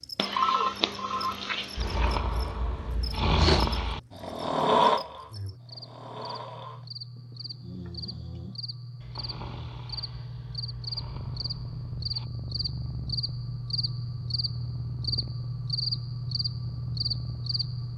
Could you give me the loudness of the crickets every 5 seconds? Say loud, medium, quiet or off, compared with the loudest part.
quiet, medium, loud, loud.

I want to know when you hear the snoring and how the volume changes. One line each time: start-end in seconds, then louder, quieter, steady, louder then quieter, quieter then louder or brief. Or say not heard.
1.8-12.2 quieter.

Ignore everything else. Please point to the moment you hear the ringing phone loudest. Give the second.
1 s.